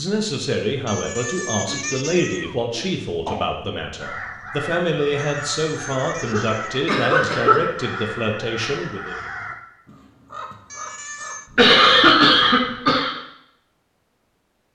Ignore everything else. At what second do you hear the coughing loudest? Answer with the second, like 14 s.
12 s.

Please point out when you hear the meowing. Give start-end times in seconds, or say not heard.
0.8-2.5, 5.2-6.7, 10.7-11.5.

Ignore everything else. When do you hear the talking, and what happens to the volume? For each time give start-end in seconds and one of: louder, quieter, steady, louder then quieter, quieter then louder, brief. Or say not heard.
0.0-9.3 steady.